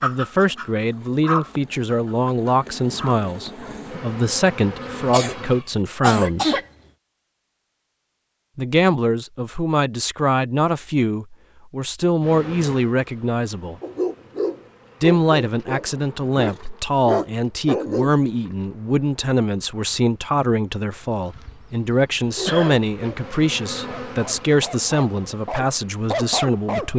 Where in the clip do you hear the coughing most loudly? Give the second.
6 s.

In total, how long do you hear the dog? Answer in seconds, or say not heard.
12 s.